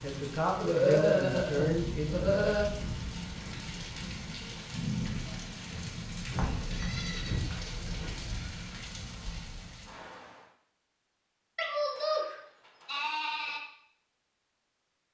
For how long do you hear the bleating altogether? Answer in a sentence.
You can hear the bleating for 6 seconds altogether.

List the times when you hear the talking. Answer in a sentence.
The talking can be heard from 0.0 to 2.3 s.